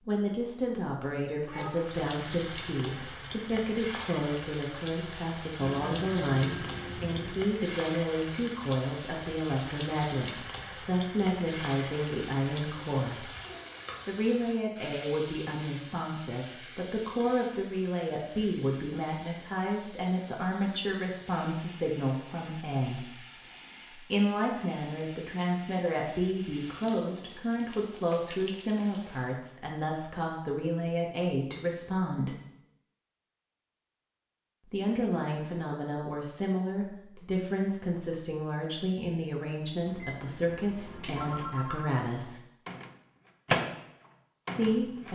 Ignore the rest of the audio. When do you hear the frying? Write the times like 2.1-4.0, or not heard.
1.4-29.4.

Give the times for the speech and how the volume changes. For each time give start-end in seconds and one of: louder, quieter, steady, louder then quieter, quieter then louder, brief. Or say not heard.
0.0-13.2 steady
14.1-32.3 steady
34.7-42.4 steady
44.5-45.0 brief.